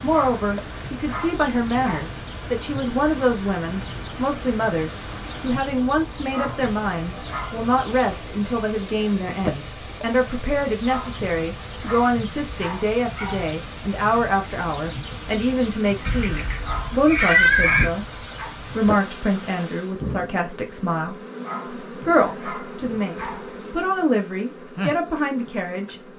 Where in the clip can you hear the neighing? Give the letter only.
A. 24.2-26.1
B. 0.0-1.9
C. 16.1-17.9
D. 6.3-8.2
C.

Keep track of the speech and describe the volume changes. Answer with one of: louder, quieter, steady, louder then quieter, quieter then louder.
steady.